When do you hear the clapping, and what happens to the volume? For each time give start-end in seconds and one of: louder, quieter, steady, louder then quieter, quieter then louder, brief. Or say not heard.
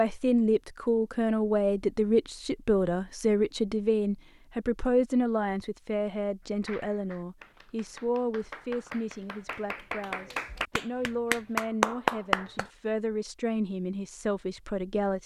6.5-12.7 louder.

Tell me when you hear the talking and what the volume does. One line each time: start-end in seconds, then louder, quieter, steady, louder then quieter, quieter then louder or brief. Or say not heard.
0.0-15.2 quieter.